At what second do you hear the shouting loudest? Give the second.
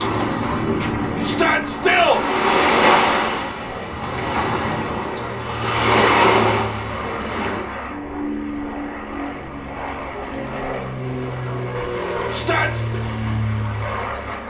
2 s.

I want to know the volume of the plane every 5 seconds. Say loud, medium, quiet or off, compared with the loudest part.
medium, loud, loud.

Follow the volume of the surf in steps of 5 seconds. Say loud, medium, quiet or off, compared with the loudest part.
loud, loud, off.